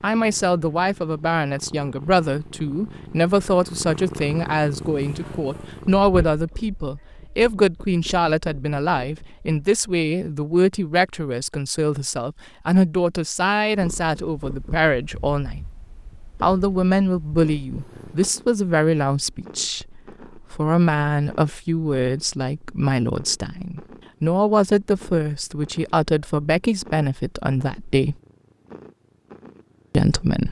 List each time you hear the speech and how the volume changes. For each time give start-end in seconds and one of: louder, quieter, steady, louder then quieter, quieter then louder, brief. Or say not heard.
0.0-15.7 steady
16.4-28.1 steady
29.9-30.4 brief.